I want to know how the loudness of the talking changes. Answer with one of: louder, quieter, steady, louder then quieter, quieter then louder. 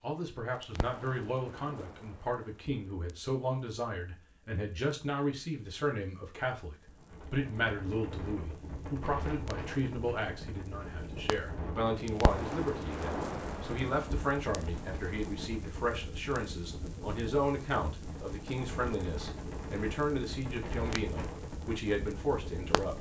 steady.